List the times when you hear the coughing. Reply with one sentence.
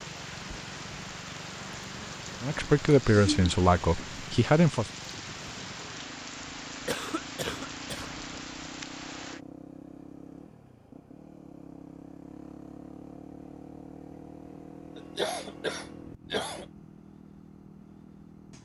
You can hear the coughing from 3.0 to 3.5 s, from 6.8 to 8.1 s and from 14.9 to 16.6 s.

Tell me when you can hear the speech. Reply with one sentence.
You can hear the speech from 2.4 to 4.9 s.